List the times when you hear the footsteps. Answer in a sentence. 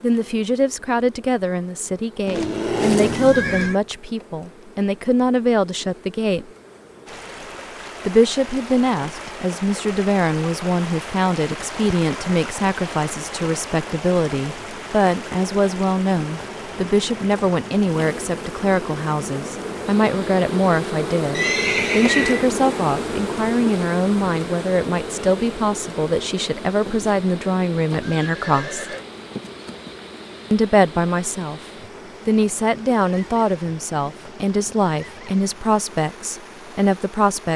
You can't hear the footsteps here.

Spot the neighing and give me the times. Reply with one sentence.
You can hear the neighing from 2.2 to 3.8 s, from 21.3 to 22.5 s and from 28.0 to 29.1 s.